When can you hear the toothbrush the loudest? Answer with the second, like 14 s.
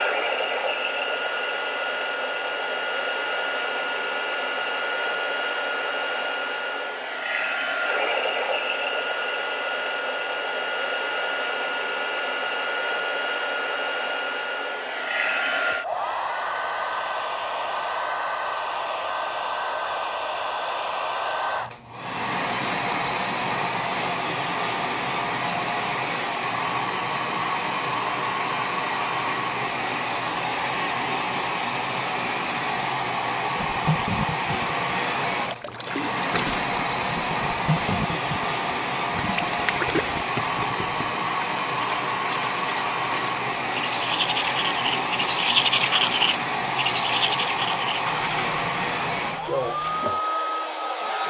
46 s.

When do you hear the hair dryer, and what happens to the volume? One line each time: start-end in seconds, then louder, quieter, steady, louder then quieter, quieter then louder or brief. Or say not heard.
0.0-51.2 steady.